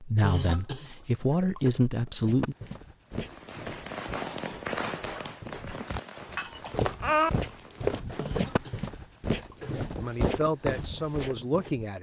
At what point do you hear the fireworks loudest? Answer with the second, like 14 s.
5 s.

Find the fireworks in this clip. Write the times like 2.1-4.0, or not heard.
3.0-8.8.